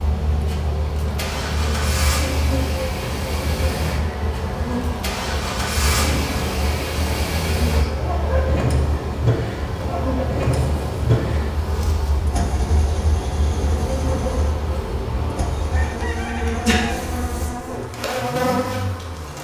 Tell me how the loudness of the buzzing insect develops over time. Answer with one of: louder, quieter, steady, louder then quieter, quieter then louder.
steady.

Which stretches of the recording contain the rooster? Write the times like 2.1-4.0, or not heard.
15.7-17.1.